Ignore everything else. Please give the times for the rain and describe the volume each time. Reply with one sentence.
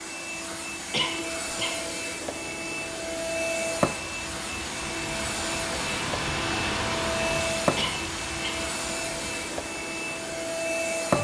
The rain can be heard from 0.1 to 11.0 s, getting louder then quieter.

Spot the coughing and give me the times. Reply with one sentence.
The coughing can be heard from 0.9 to 1.8 s and from 7.8 to 8.7 s.